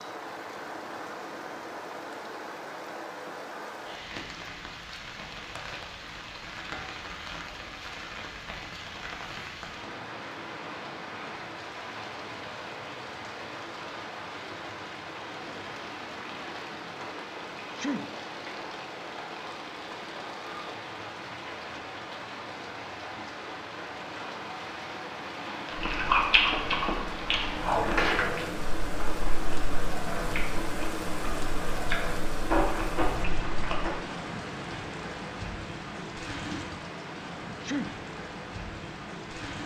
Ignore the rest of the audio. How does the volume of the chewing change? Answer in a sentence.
The volume of the chewing goes down, then up.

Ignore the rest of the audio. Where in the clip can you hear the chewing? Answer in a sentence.
You can hear the chewing from 25.6 to 33.9 s.